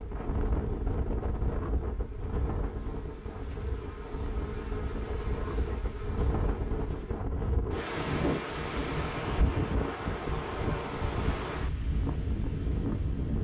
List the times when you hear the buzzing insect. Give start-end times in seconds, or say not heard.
0.0-7.3.